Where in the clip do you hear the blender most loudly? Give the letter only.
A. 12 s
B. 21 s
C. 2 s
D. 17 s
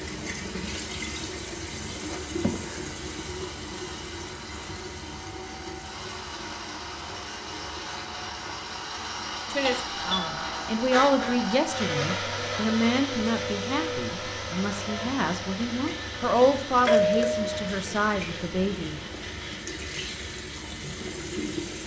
A.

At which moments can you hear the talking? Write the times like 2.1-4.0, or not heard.
9.5-18.9.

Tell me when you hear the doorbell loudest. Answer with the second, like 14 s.
17 s.